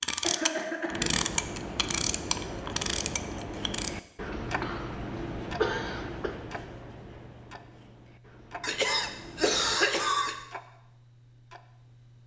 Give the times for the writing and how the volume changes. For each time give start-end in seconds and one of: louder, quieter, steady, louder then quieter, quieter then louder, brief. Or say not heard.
0.9-9.8 quieter.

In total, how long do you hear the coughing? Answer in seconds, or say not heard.
4 s.